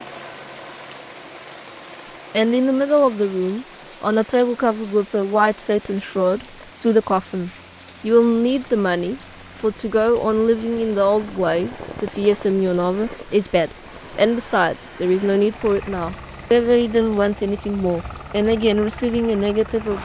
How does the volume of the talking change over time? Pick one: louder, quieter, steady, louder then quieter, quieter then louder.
steady.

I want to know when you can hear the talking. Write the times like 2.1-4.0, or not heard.
2.3-20.0.